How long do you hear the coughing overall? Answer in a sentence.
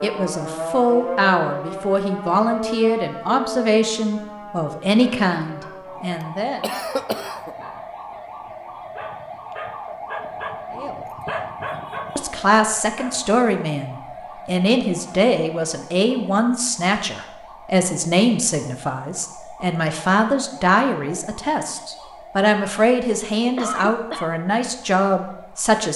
The coughing can be heard for 2 seconds in total.